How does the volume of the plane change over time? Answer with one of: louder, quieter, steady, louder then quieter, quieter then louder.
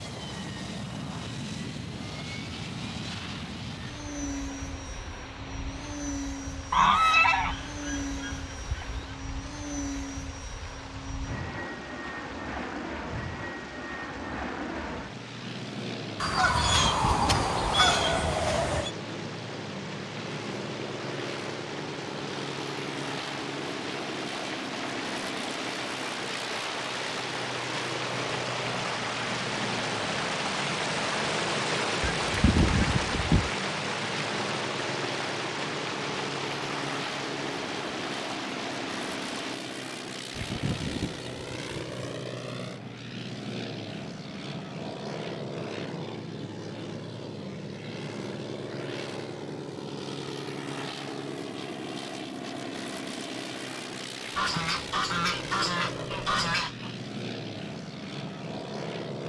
steady.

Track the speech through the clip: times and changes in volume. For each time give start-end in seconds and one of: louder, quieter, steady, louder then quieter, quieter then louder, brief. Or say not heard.
not heard.